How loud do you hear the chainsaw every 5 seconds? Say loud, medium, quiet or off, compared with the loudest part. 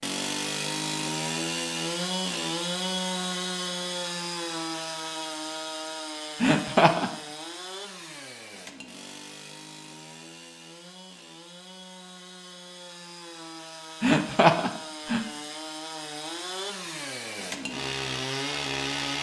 loud, medium, quiet, loud.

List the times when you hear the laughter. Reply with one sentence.
The laughter can be heard from 6.4 to 7.1 s and from 14.0 to 15.2 s.